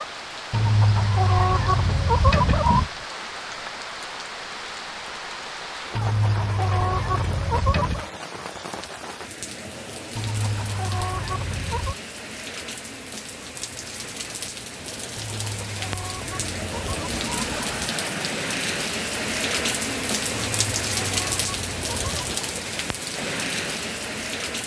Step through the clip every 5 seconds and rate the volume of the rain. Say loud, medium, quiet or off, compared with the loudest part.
medium, medium, medium, loud, loud.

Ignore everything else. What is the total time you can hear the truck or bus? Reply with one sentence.
The truck or bus can't be heard in this clip.